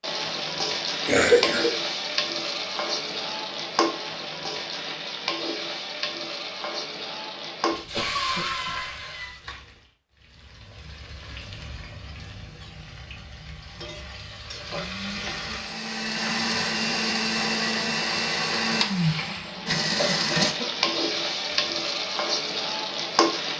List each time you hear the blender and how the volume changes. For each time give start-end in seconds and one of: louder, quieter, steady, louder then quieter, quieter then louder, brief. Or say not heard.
13.7-20.6 louder.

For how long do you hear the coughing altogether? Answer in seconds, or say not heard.
4 s.